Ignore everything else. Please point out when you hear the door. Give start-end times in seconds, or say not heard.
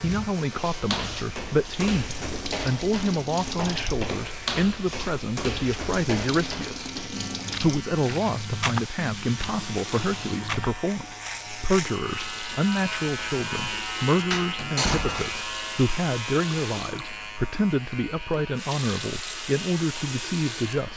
14.3-15.4.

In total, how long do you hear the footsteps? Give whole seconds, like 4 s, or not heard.
10 s.